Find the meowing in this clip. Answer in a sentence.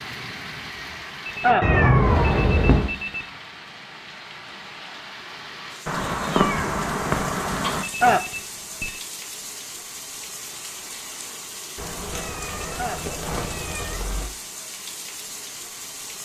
You can hear the meowing from 1.6 to 2.9 s, from 5.8 to 7.8 s and from 11.8 to 14.3 s.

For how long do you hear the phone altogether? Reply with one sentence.
The phone can be heard for 4 seconds in total.